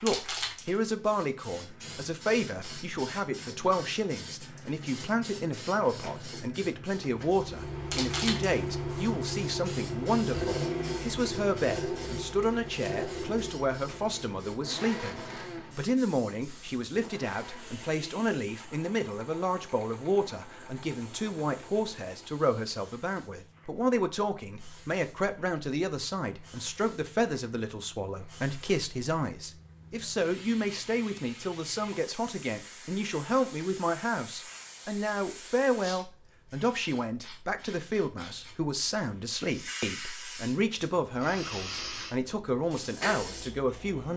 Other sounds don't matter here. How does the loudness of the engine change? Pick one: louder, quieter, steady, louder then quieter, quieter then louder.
quieter.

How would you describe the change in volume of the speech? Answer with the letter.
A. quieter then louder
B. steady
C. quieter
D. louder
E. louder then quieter
B.